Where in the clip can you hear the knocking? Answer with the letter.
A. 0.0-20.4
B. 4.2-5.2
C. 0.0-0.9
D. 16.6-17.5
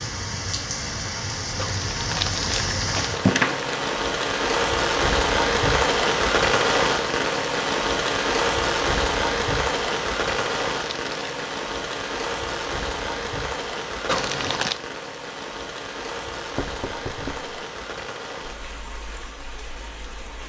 D.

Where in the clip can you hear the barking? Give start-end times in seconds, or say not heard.
not heard.